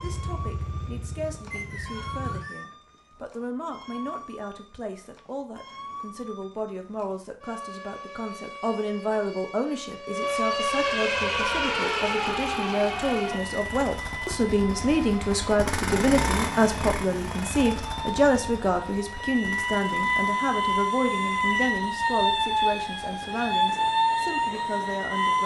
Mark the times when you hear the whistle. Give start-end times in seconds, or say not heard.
1.5-2.6.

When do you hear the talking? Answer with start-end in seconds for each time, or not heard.
0.0-25.4.